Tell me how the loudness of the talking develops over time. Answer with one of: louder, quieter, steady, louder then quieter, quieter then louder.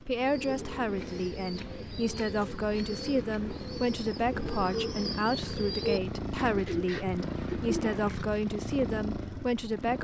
steady.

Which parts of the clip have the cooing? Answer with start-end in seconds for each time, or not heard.
0.1-8.4.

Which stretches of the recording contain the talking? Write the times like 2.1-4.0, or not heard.
0.0-10.0.